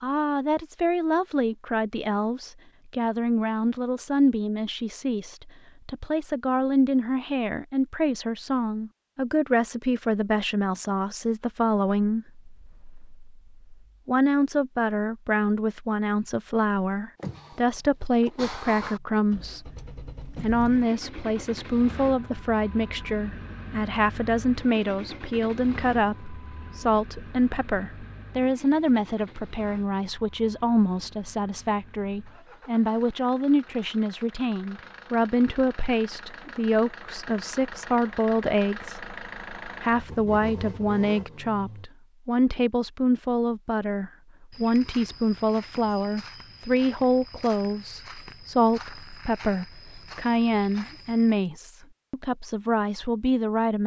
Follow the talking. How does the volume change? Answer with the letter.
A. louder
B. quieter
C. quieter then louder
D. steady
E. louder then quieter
D.